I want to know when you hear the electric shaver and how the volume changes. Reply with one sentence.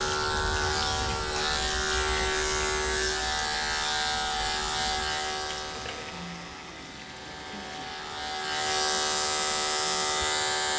You can hear the electric shaver from 0.0 to 10.7 s, getting quieter then louder.